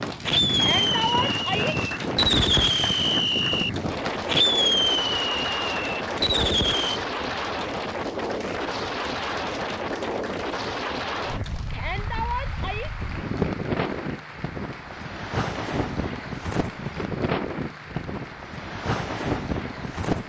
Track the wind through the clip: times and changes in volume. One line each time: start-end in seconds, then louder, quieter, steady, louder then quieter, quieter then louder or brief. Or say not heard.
0.0-20.2 steady.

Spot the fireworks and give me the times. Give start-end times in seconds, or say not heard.
0.0-7.0.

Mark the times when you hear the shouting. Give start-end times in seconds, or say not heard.
0.6-1.8, 11.7-12.9.